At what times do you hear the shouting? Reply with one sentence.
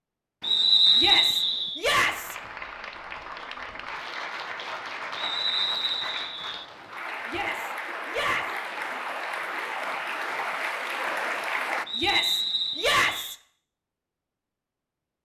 The shouting can be heard from 0.9 to 2.4 s, from 7.2 to 8.6 s and from 11.9 to 13.3 s.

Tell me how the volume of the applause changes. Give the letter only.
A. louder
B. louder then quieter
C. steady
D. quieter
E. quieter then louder
A.